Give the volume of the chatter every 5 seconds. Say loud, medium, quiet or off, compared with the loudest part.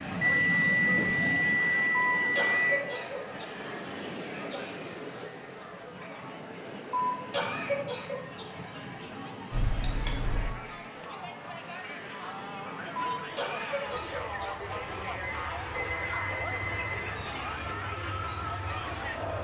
medium, medium, loud, loud.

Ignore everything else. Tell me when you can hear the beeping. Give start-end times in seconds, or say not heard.
0.2-2.9, 9.5-10.6, 15.2-17.0.